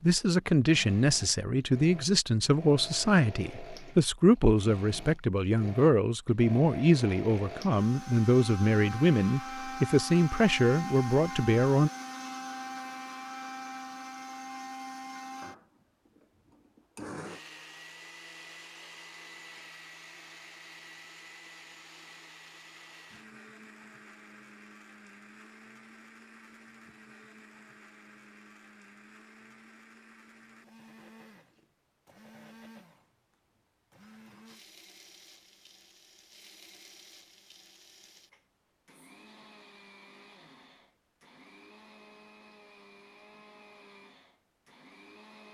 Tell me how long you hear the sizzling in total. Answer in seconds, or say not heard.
not heard.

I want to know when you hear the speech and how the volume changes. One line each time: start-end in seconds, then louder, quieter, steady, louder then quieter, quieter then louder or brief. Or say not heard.
0.0-11.9 steady.